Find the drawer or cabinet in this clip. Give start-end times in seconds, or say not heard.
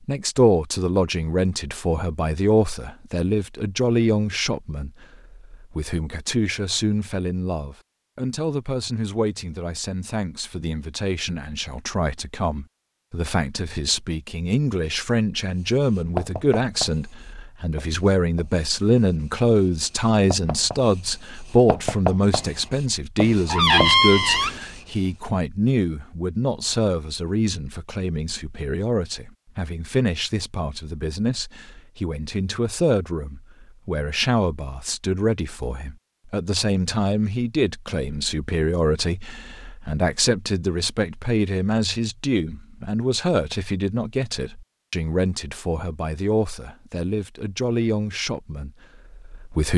23.4-24.6.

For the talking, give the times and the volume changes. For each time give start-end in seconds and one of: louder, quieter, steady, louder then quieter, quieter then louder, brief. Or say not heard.
0.1-49.7 steady.